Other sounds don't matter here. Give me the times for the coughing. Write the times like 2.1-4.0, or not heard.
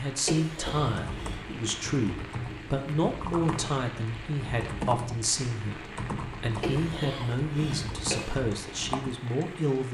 0.2-1.4, 6.6-8.3.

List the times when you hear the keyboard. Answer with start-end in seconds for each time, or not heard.
0.6-9.2.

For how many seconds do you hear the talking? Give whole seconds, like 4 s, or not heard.
10 s.